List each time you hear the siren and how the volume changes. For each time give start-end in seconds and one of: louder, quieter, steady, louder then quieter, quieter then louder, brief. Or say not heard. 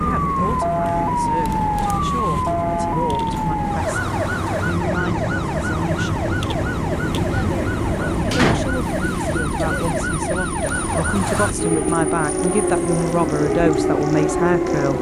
0.0-14.9 quieter then louder.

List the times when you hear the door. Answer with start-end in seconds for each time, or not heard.
8.3-9.7.